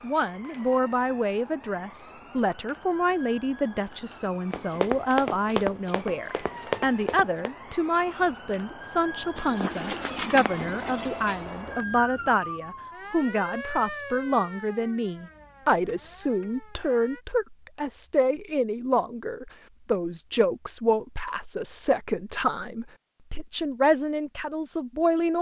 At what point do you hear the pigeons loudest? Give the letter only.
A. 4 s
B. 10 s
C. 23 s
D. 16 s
B.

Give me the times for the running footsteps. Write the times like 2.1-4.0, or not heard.
4.5-7.5.